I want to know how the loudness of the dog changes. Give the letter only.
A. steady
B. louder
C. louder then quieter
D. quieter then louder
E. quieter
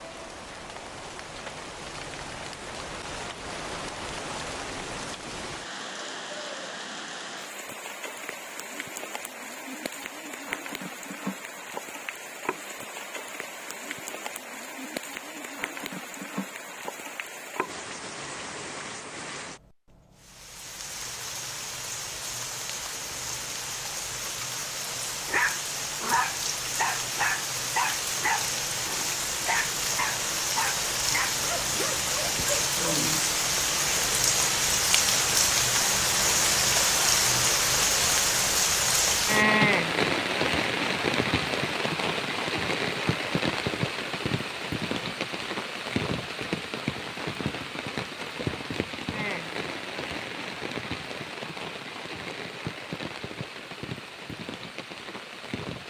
E.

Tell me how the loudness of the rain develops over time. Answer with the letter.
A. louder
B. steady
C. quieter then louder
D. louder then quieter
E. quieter
D.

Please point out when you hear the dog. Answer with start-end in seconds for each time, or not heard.
25.2-33.4.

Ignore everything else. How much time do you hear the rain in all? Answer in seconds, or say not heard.
56 s.